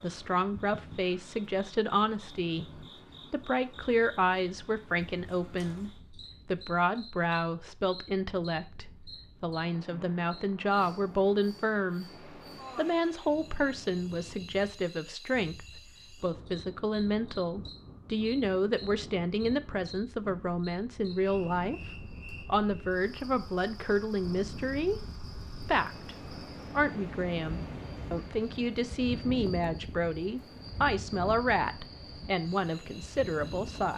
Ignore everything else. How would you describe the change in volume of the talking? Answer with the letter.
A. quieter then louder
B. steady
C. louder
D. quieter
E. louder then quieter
B.